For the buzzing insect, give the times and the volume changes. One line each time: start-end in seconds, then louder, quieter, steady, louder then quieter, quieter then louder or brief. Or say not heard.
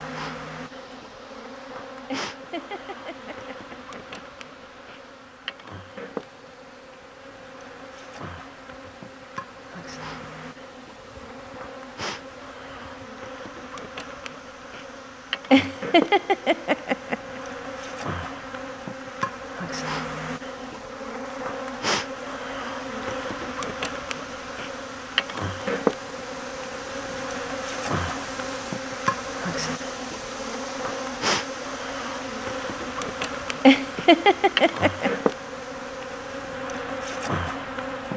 0.0-38.1 louder.